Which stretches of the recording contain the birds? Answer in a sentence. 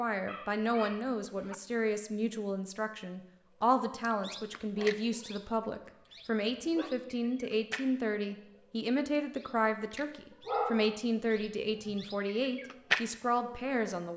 The birds can be heard from 4.0 to 14.0 s.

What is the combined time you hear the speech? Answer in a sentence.
You can hear the speech for 14 seconds altogether.